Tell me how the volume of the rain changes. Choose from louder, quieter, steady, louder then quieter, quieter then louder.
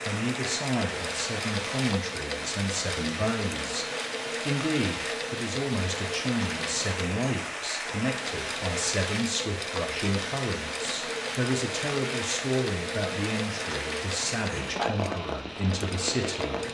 steady.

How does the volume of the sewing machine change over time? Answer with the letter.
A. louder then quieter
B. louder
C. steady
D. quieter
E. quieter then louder
C.